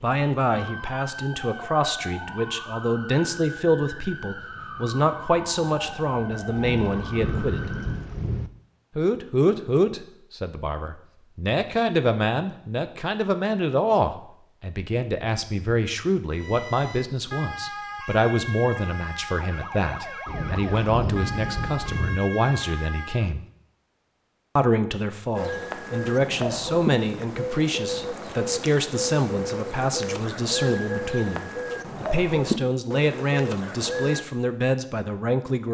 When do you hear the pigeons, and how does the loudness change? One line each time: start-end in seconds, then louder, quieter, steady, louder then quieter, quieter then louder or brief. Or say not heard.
25.4-34.2 steady.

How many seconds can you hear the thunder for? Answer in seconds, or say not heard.
4 s.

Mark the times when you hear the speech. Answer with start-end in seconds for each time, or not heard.
0.0-7.8, 8.9-23.4, 24.6-35.6.